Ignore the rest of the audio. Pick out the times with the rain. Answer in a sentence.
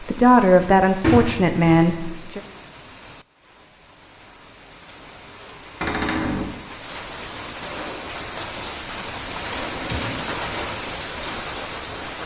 You can hear the rain from 0.0 to 12.2 s.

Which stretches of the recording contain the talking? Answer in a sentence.
The talking can be heard from 0.0 to 2.4 s.